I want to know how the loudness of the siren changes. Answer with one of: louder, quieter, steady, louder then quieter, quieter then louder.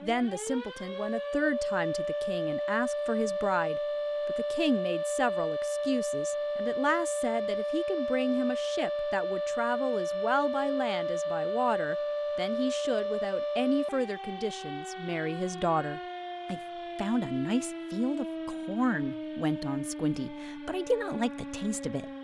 quieter.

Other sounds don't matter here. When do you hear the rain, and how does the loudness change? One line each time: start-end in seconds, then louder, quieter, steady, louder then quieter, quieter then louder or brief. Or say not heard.
not heard.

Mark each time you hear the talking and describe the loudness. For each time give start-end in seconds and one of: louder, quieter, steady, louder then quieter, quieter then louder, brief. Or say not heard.
0.0-22.1 steady.